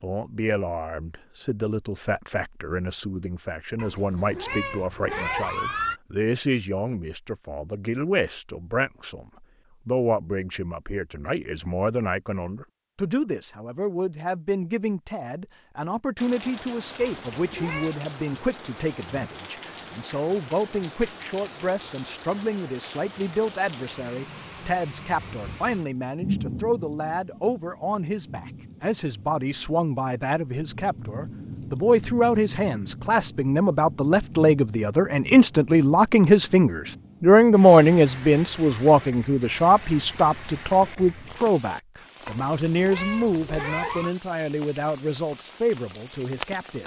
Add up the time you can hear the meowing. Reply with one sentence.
The meowing can be heard for 5 seconds in total.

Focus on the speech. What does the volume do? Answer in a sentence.
The loudness of the speech goes up.